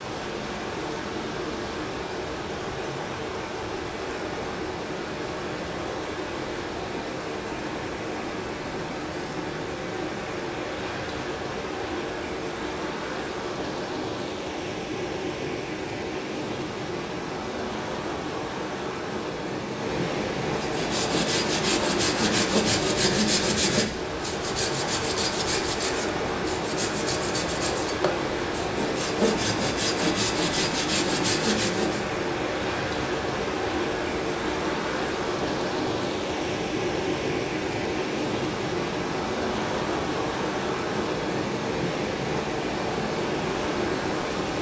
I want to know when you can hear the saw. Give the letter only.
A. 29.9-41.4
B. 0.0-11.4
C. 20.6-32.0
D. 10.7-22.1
C.